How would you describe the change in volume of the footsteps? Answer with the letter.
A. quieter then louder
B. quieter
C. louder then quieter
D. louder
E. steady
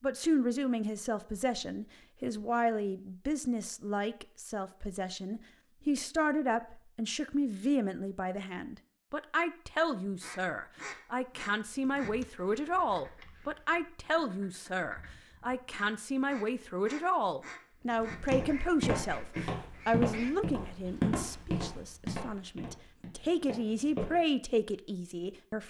B.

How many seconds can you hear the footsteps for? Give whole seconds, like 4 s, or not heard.
6 s.